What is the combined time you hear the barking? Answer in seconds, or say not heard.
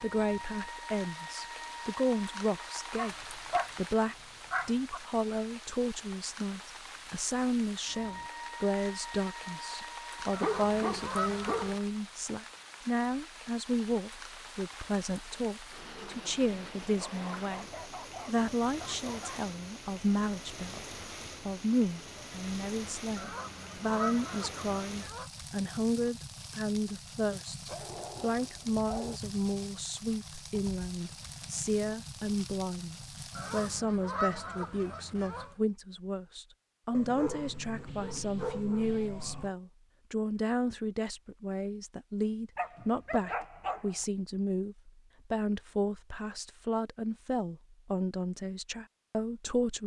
12 s.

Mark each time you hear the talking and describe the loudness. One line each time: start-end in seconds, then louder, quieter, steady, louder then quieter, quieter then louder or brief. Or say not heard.
0.0-49.8 steady.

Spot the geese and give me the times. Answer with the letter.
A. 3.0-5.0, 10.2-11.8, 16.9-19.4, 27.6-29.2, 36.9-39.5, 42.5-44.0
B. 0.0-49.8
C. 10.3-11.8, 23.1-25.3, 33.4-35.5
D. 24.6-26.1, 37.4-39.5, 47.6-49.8
C.